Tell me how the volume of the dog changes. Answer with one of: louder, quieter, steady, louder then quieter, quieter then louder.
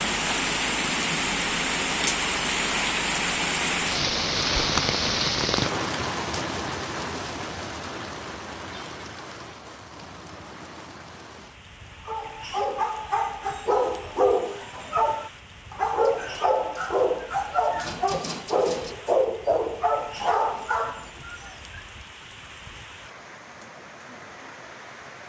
steady.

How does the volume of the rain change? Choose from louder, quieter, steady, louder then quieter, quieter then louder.
quieter.